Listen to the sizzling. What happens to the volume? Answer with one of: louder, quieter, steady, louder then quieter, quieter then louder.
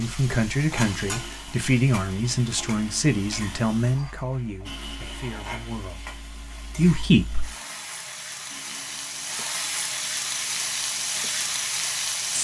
quieter then louder.